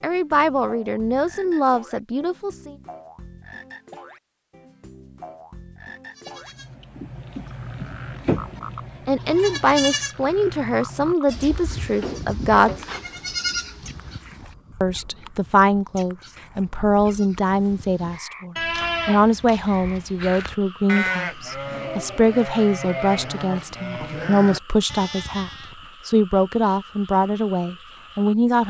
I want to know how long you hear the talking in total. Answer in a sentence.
The talking can be heard for 20 seconds in total.